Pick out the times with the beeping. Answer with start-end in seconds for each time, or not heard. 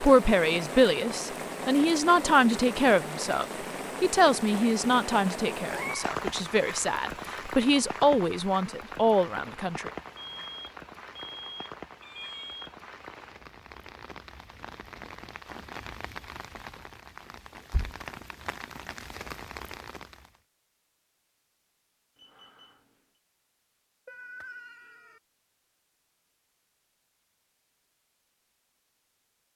10.2-12.8, 22.1-23.2.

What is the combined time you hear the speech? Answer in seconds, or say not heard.
10 s.